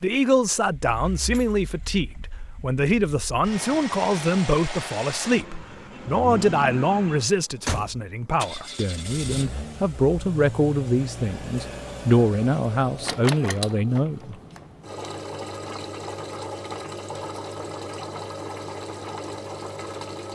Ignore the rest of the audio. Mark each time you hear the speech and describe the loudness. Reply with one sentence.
The speech can be heard from 0.0 to 14.3 s, at a steady volume.